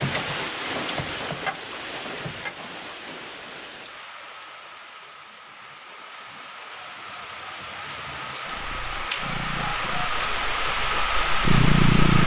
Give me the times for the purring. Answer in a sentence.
The purring can be heard from 8.4 to 12.2 s.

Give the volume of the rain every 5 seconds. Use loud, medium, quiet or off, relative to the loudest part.
medium, medium, loud.